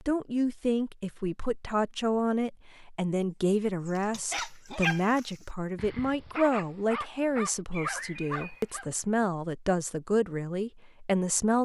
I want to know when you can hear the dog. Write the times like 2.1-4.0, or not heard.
3.9-8.8.